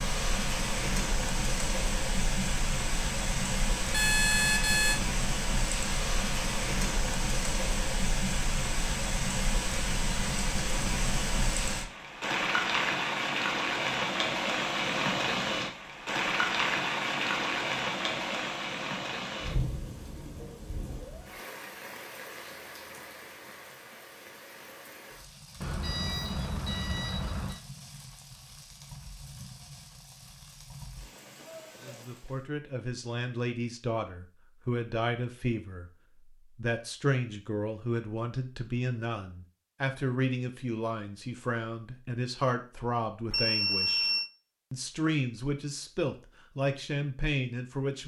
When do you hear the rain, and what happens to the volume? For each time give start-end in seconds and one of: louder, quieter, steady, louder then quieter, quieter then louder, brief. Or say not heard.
0.0-32.5 quieter.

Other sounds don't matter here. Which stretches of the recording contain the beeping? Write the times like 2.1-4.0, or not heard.
3.9-5.0, 25.6-27.6, 43.3-44.3.